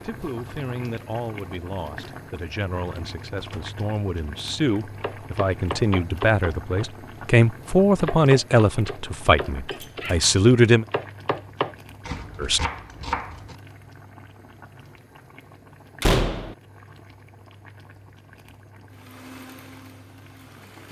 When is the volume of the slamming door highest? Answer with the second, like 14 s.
16 s.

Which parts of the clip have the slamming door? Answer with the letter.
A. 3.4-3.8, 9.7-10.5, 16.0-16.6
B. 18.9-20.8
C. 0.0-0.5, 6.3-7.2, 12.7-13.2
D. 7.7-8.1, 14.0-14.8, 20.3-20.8
A.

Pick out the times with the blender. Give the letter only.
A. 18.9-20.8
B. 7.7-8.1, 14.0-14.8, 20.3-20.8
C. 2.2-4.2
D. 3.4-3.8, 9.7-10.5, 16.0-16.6
A.